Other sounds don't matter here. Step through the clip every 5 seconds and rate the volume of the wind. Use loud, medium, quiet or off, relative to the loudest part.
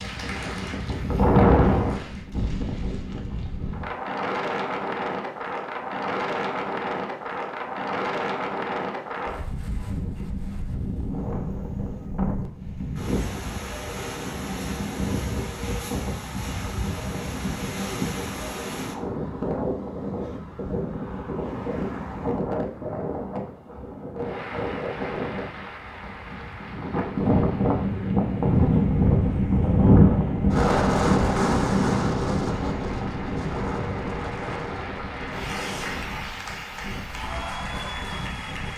loud, medium, medium, medium, medium, loud, loud, quiet.